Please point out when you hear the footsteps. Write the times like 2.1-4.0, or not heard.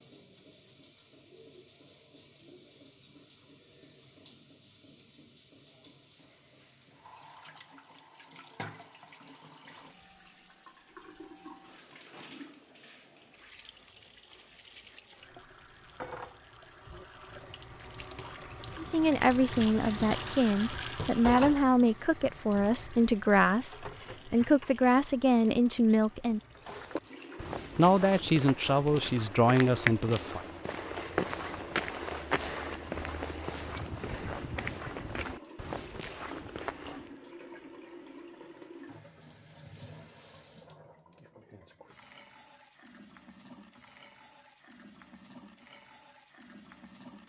26.6-37.1.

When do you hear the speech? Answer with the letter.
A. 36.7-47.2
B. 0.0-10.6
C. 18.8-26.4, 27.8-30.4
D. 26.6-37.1
C.